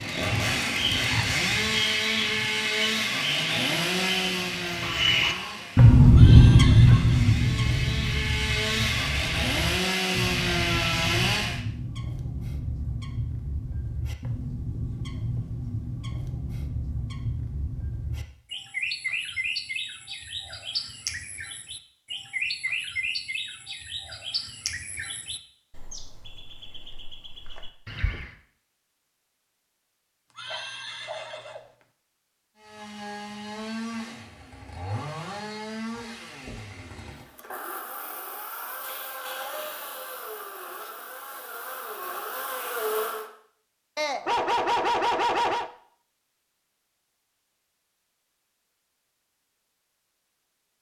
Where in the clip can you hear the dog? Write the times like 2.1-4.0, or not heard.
4.8-7.2, 30.5-31.6, 44.0-45.7.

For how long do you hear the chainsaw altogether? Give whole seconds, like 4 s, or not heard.
22 s.